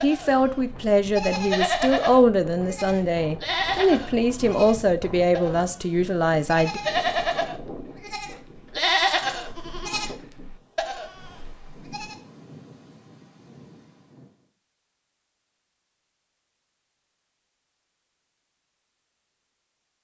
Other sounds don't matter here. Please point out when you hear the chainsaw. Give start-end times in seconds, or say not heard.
not heard.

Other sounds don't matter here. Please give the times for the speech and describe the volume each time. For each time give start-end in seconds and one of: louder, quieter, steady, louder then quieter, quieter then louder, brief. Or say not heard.
0.0-6.8 steady.